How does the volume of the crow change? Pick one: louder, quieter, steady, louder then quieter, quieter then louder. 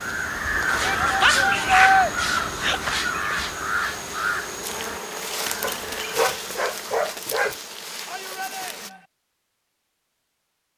quieter.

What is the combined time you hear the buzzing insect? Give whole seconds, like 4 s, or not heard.
9 s.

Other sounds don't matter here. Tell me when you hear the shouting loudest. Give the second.
2 s.